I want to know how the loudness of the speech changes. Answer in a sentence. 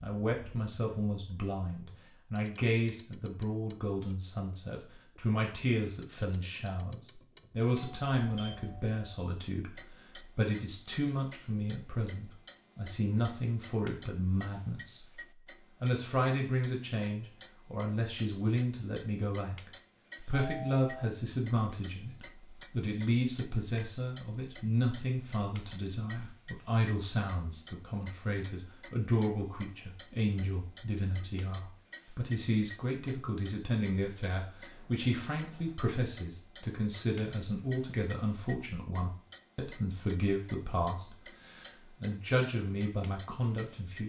The loudness of the speech stays about the same.